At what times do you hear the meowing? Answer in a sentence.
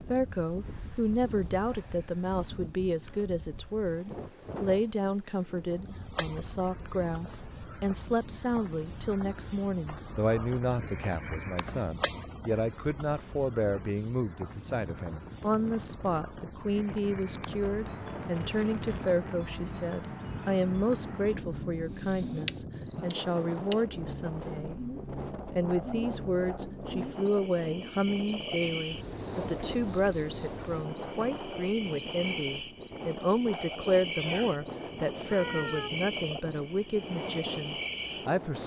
The meowing can be heard from 34.1 to 36.0 s.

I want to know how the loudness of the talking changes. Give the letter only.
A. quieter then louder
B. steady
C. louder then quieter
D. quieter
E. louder
B.